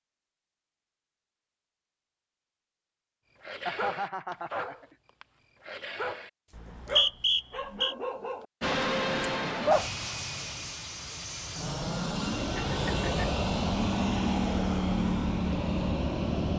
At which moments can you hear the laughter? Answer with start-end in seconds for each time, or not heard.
3.6-5.0, 12.4-13.3.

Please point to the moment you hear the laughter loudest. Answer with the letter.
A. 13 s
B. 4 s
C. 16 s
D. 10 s
B.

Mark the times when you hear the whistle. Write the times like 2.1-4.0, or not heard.
6.5-8.0.